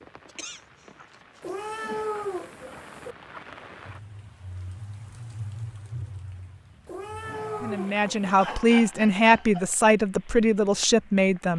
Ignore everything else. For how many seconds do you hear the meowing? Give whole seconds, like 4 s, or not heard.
3 s.